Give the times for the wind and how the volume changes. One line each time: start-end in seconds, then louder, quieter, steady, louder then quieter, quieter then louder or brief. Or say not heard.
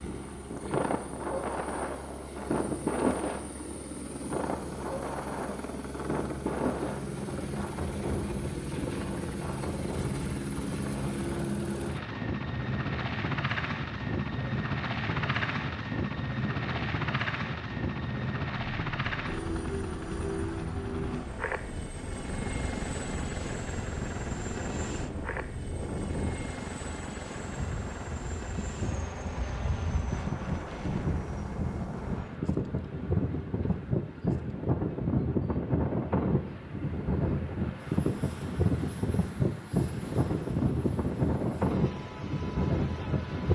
0.0-43.5 quieter then louder.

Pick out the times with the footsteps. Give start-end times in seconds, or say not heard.
not heard.